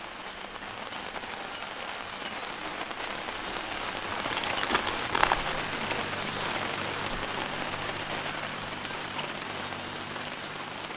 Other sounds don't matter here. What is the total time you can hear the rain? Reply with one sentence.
You can hear the rain for 11 seconds altogether.